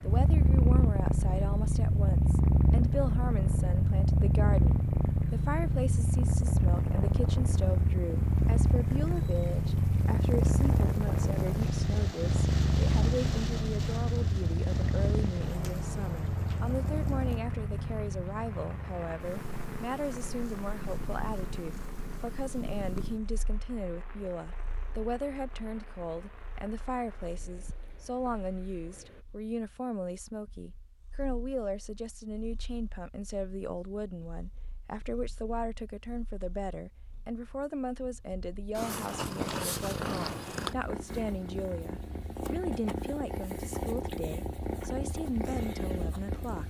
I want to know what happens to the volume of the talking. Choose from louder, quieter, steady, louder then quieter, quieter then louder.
steady.